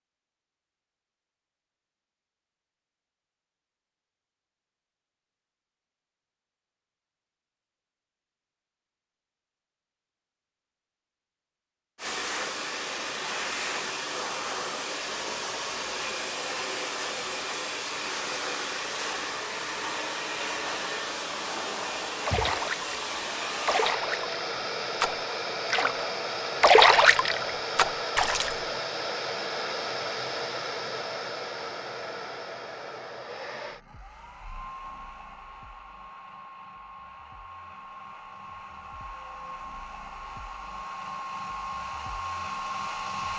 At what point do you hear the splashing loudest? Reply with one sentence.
The volume of the splashing peaks at 27 seconds.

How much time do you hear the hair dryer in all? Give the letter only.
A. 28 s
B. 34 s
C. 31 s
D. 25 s
C.